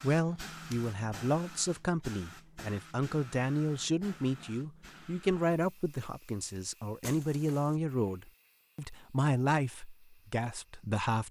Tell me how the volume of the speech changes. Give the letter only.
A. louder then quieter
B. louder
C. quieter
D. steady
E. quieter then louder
D.